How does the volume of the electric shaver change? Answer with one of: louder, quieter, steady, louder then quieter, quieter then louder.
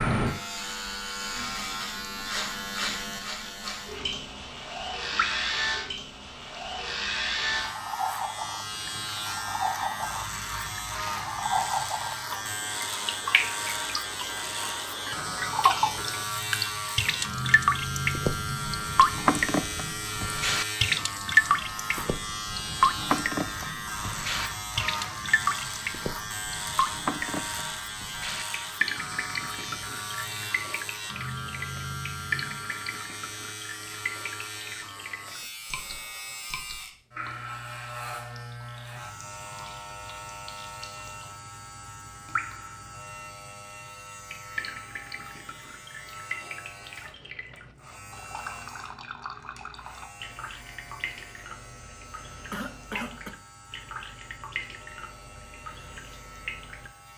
quieter.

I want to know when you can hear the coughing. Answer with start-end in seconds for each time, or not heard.
52.5-53.4.